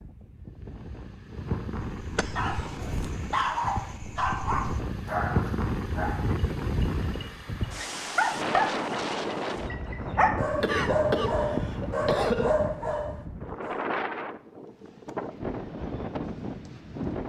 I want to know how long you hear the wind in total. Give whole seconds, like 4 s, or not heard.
17 s.